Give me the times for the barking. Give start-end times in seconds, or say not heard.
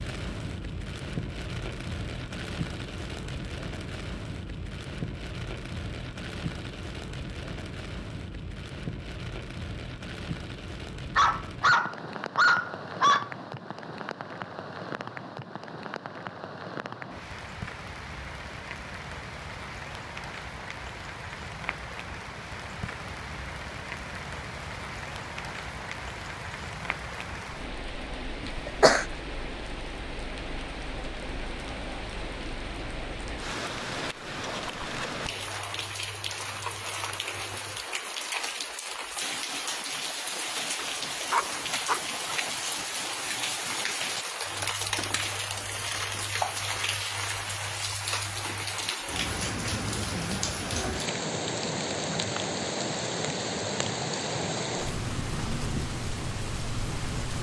11.2-13.3, 40.8-42.4.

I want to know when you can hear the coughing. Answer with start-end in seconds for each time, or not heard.
28.4-29.1.